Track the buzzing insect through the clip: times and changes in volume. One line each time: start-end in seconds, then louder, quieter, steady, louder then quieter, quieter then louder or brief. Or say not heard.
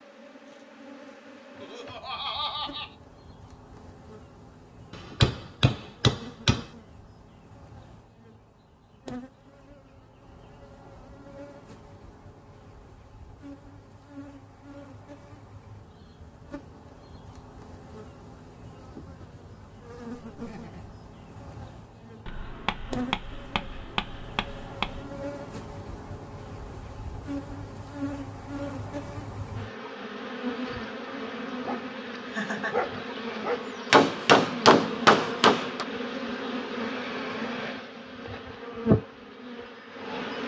0.0-40.4 louder.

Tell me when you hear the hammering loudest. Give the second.
35 s.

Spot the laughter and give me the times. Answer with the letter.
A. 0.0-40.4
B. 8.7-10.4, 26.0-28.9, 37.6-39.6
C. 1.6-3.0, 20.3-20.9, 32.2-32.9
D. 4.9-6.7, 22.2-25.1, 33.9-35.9
C.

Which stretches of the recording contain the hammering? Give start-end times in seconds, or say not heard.
4.9-6.7, 22.2-25.1, 33.9-35.9.